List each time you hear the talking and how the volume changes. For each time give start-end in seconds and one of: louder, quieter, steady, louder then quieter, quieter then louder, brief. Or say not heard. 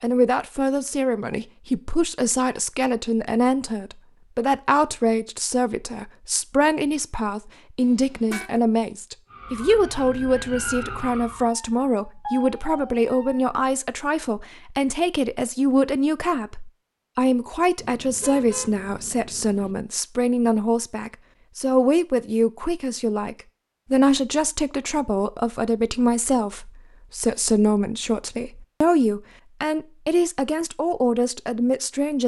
0.0-32.2 steady.